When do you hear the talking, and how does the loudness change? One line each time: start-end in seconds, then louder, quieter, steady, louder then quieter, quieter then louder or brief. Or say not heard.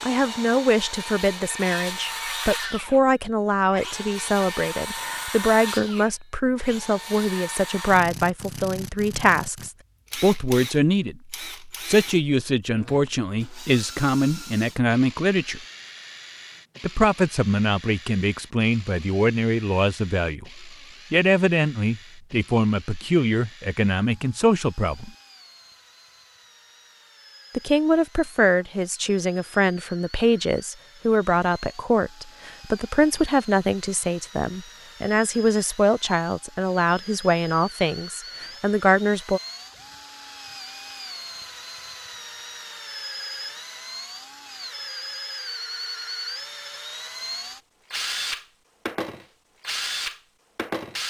0.0-15.6 steady
16.8-25.1 steady
27.5-39.4 steady.